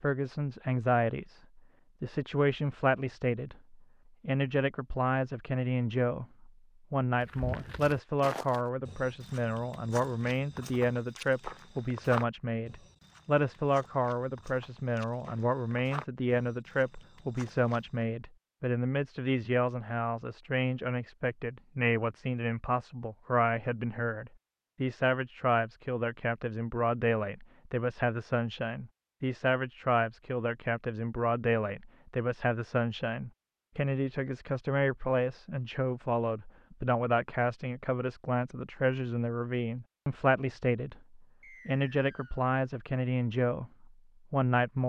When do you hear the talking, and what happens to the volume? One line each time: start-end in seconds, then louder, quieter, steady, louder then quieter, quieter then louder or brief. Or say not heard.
0.0-44.8 steady.